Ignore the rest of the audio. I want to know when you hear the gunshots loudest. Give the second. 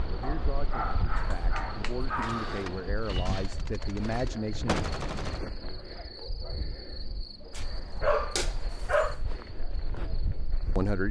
5 s.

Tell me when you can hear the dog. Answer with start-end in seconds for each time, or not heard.
0.2-2.6, 7.5-9.2.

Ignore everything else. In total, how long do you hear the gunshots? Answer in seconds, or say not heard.
3 s.